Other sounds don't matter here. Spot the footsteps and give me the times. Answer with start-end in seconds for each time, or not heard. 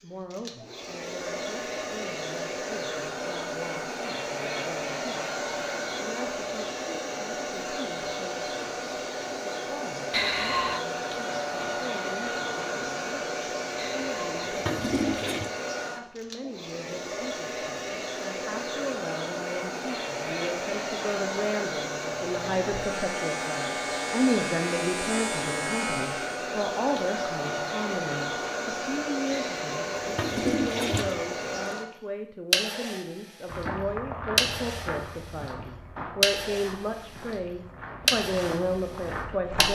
33.5-39.7.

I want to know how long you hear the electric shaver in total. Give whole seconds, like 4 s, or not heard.
4 s.